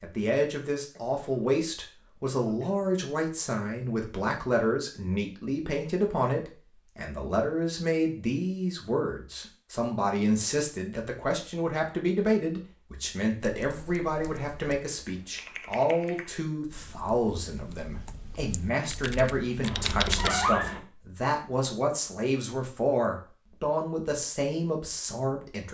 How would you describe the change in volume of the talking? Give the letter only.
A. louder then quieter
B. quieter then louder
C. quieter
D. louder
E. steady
E.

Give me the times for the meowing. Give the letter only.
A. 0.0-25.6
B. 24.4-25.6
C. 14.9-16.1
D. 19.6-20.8
D.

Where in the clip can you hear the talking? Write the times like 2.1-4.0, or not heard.
0.0-25.6.